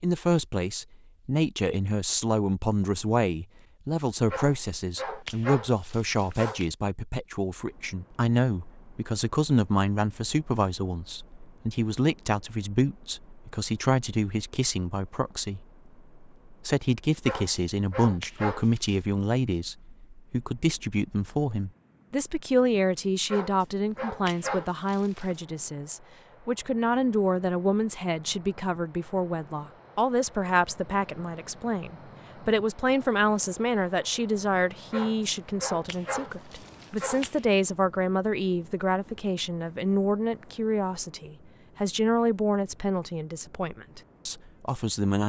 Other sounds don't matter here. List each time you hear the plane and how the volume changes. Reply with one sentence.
The plane can't be heard in this clip.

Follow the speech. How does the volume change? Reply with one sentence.
The volume of the speech stays about the same.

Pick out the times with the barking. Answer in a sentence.
You can hear the barking from 4.3 to 6.7 s, from 17.2 to 18.9 s, from 23.3 to 25.4 s and from 34.9 to 37.5 s.